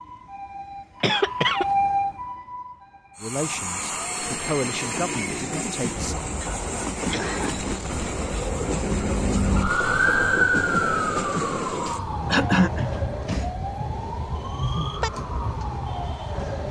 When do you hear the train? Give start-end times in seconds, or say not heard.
3.1-16.6.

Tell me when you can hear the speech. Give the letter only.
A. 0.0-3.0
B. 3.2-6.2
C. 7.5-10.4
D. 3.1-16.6
B.